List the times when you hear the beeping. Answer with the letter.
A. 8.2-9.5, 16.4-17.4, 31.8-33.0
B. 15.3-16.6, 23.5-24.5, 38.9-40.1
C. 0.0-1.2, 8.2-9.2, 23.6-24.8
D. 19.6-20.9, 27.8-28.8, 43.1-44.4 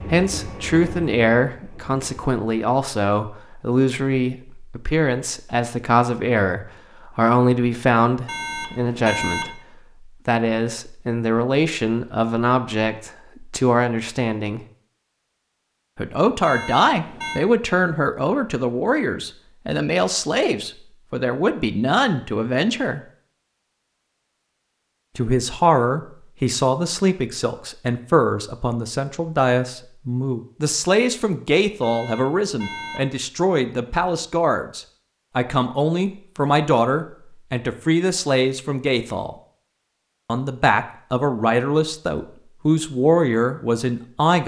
A.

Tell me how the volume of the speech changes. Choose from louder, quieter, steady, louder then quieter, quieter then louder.
steady.